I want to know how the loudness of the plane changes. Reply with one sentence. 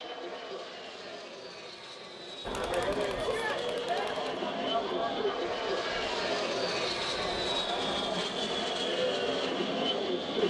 The loudness of the plane goes up.